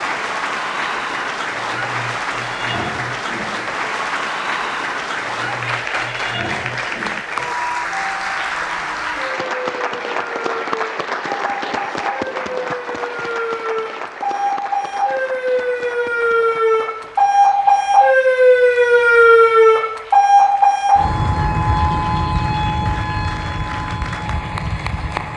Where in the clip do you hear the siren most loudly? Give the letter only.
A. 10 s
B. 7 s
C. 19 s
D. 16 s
C.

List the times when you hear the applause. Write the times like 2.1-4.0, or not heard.
0.0-25.3.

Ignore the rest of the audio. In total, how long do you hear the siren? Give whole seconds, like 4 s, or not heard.
25 s.